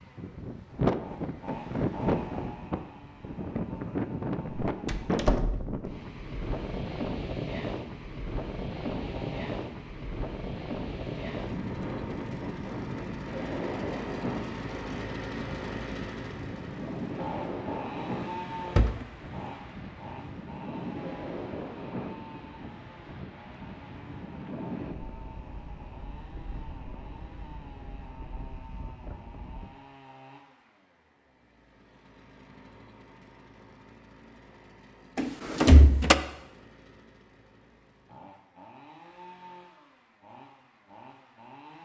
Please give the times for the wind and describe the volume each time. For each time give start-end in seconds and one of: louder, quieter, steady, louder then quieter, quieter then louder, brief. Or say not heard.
0.0-29.7 quieter.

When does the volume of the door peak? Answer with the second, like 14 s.
36 s.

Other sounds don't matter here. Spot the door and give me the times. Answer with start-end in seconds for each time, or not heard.
4.7-5.8, 18.2-19.5, 35.1-36.1.